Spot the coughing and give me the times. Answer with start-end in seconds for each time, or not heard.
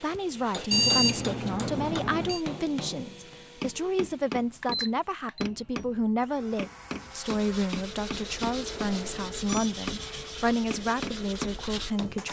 not heard.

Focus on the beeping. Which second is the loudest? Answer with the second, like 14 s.
1 s.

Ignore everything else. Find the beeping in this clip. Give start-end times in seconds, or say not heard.
0.7-2.4, 4.6-5.5, 8.8-9.7.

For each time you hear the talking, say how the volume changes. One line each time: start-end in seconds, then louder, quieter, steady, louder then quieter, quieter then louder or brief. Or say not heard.
0.0-12.2 steady.